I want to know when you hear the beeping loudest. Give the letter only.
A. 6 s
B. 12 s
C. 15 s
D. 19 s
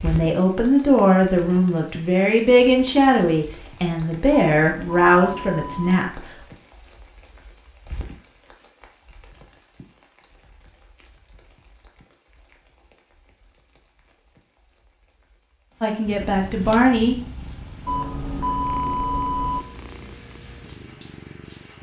D.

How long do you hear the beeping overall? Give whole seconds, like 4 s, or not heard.
3 s.